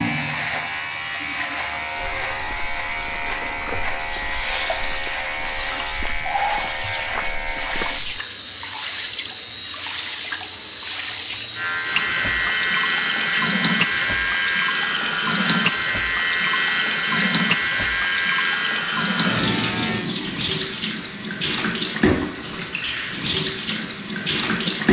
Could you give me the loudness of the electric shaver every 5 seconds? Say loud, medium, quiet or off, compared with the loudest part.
loud, loud, loud, loud, quiet.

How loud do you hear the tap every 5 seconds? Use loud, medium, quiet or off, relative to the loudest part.
medium, medium, loud, loud, loud.